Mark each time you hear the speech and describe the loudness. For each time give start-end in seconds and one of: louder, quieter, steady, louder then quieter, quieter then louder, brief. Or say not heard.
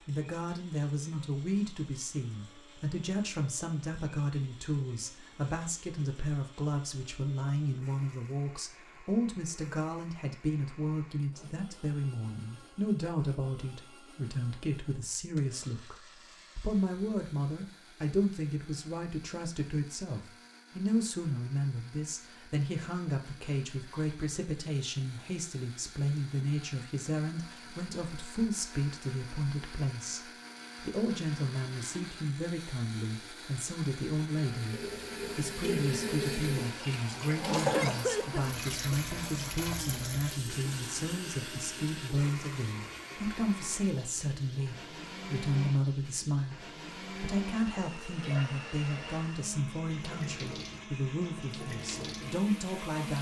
0.1-53.1 steady.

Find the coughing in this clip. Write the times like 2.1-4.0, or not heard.
37.4-39.0.